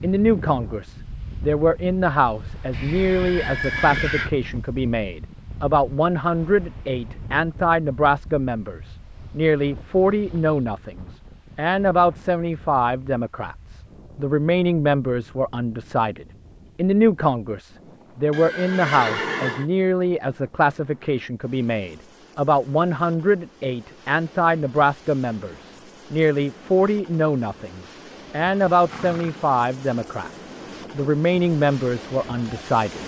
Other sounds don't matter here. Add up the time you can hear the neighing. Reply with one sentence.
You can hear the neighing for 4 seconds altogether.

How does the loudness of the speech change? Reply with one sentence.
The loudness of the speech stays about the same.